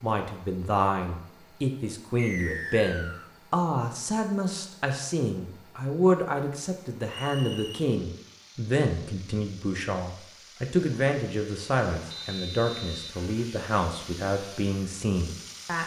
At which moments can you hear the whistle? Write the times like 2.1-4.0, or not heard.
2.1-3.3, 7.0-7.8, 12.1-13.2.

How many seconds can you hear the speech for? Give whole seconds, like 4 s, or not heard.
16 s.